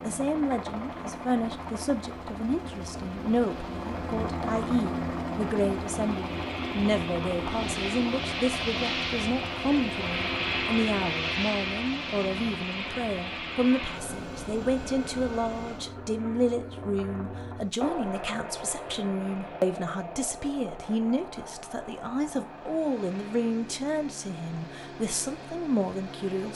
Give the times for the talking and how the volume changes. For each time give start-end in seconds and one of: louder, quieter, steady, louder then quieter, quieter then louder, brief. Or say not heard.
0.0-26.5 steady.